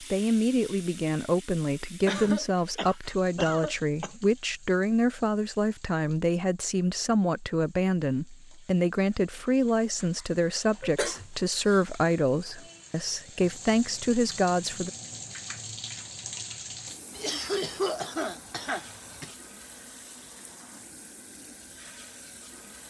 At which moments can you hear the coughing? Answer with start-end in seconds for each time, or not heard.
2.0-4.1, 10.8-11.8, 17.1-19.4.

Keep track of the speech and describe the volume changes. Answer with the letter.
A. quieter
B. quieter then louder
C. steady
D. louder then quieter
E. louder
C.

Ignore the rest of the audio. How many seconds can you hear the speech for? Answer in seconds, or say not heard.
15 s.